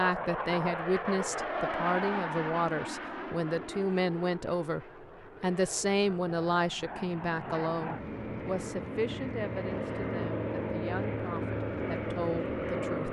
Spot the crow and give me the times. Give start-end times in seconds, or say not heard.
not heard.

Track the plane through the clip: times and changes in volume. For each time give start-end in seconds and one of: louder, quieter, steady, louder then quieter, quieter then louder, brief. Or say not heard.
0.0-13.0 quieter then louder.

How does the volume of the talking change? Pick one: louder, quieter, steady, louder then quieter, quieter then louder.
quieter.